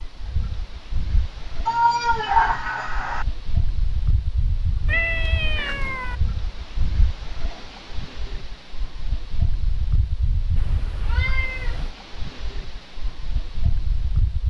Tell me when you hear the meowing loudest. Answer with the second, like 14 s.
2 s.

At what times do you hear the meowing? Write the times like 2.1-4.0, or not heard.
1.6-3.2, 4.8-6.2, 10.6-11.9.